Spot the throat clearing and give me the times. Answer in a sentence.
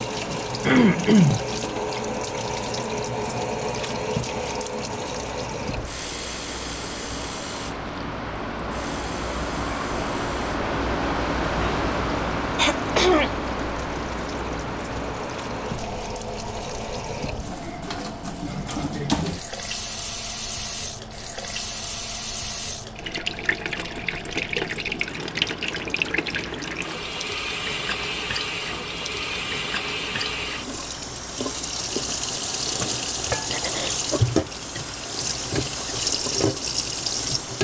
You can hear the throat clearing from 0.6 to 1.4 s, from 12.6 to 13.3 s and from 32.5 to 34.0 s.